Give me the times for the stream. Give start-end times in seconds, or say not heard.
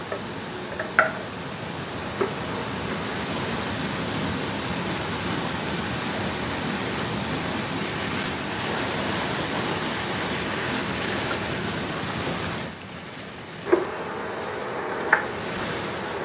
0.0-16.2.